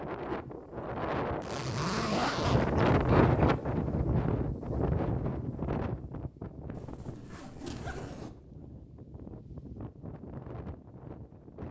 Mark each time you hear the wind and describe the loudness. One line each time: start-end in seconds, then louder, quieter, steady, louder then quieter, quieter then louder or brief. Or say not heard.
0.0-11.6 louder then quieter.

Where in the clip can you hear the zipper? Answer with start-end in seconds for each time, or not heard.
1.4-2.7, 6.8-8.3.